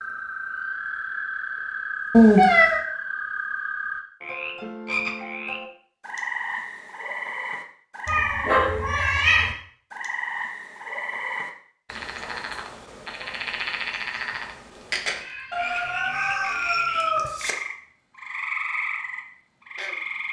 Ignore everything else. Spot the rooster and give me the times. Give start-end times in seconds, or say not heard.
15.5-17.6.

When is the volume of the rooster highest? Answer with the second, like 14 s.
17 s.